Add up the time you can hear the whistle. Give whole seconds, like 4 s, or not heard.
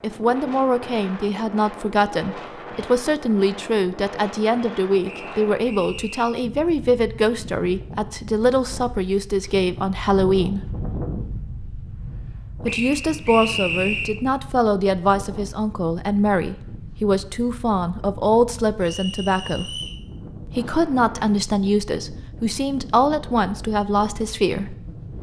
4 s.